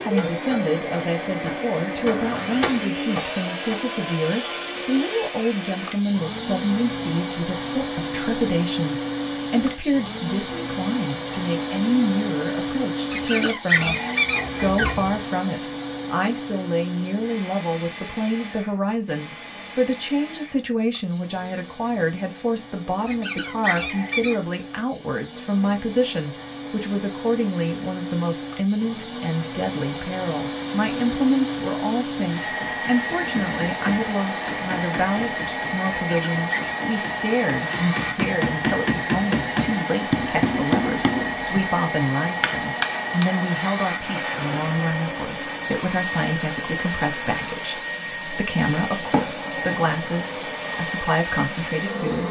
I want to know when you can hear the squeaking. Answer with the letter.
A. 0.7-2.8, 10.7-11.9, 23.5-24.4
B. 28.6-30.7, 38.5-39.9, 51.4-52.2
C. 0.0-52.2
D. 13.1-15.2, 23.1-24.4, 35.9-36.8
D.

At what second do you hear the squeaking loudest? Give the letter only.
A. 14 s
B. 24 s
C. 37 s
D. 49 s
A.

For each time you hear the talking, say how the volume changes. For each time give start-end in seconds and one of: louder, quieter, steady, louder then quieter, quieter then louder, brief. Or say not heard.
0.0-52.2 steady.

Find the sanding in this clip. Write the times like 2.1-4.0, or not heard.
not heard.